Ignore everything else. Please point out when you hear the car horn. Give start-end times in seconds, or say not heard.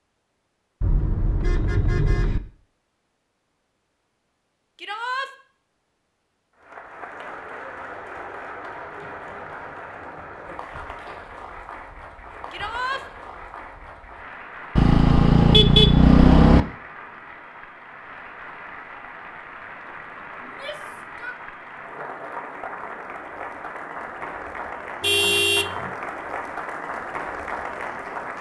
0.8-2.4, 14.8-16.6, 25.0-25.9.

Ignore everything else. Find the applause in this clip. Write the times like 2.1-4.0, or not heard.
6.6-28.3.